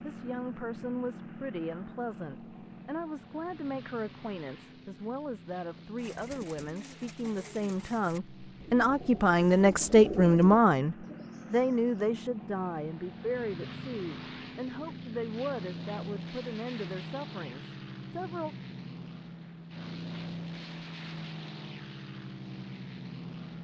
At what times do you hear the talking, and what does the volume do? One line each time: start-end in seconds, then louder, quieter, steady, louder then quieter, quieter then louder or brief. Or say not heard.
0.0-18.6 louder then quieter.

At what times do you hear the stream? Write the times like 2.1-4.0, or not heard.
not heard.